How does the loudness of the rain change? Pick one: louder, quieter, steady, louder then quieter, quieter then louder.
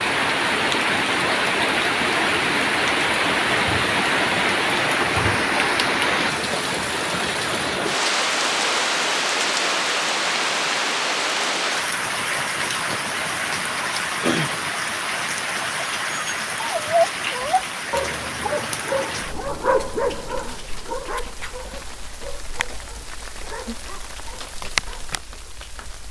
quieter.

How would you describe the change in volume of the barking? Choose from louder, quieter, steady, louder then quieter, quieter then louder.
quieter.